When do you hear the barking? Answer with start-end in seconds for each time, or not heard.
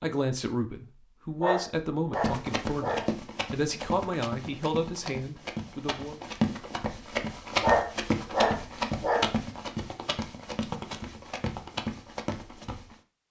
1.4-3.0, 7.6-9.2.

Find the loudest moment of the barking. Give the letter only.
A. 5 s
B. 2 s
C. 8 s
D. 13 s
C.